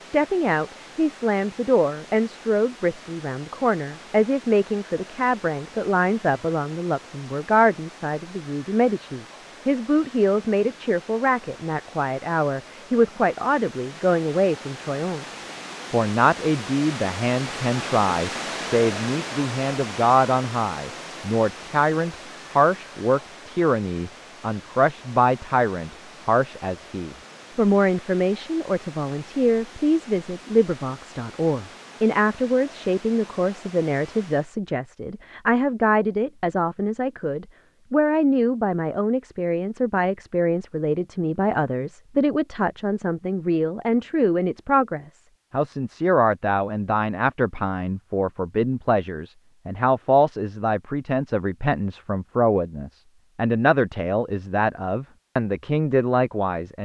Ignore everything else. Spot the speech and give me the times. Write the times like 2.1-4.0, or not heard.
0.0-56.8.